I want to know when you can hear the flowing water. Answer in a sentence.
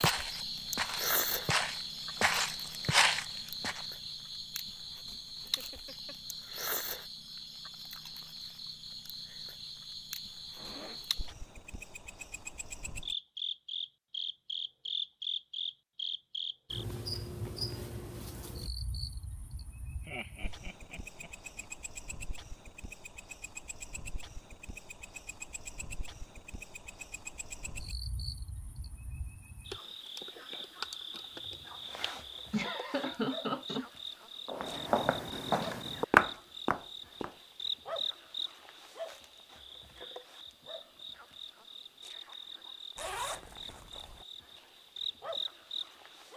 You can't hear the flowing water here.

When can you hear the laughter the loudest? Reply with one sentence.
The volume of the laughter peaks at 33 seconds.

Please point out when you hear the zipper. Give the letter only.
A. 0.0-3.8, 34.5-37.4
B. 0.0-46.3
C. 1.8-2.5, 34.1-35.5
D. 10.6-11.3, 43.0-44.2
D.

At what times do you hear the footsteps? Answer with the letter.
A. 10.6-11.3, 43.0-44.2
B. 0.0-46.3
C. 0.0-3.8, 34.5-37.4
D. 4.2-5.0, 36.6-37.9
C.